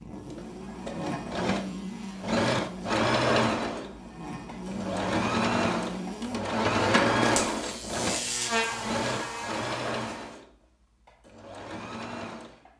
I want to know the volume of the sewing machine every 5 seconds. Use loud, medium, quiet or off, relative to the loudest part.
loud, loud, quiet.